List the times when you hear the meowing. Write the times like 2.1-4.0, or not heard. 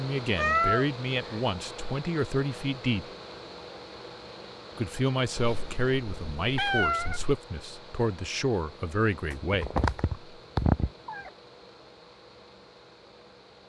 0.3-1.4, 5.3-7.3, 9.5-11.2.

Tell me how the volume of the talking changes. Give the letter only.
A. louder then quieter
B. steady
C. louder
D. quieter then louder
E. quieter
B.